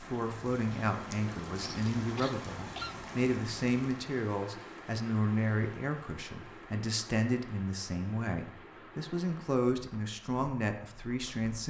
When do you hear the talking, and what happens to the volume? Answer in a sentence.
You can hear the talking from 0.0 to 11.6 s, at a steady volume.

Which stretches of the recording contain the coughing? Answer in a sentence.
The coughing can be heard from 1.6 to 3.0 s.